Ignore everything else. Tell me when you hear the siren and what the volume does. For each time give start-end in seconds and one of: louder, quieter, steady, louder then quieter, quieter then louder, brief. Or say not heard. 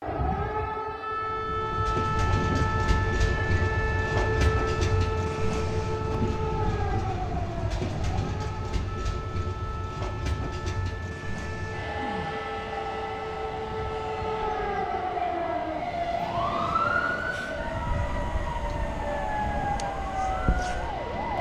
0.0-21.3 quieter then louder.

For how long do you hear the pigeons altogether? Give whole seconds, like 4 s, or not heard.
not heard.